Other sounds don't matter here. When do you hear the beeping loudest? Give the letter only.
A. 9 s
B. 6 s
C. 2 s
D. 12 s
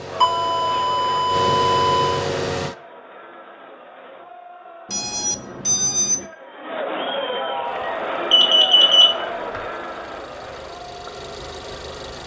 A.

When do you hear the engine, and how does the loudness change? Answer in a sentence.
The engine can be heard briefly from 0.0 to 2.8 s; and from 7.6 to 12.2 s, getting louder.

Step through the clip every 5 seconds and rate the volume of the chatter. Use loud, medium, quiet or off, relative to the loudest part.
medium, loud, medium.